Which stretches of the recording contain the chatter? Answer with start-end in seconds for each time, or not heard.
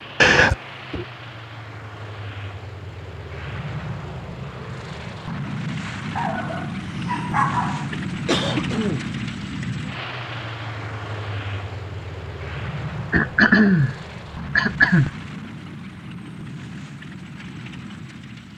not heard.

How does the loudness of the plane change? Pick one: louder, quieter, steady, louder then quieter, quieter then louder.
louder then quieter.